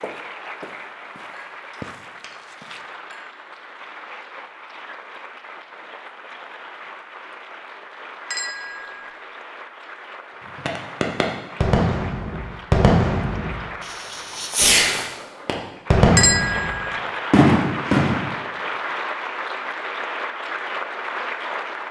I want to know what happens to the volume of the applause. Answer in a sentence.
The volume of the applause goes up.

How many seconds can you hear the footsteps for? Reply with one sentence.
The footsteps can be heard for 3 seconds in total.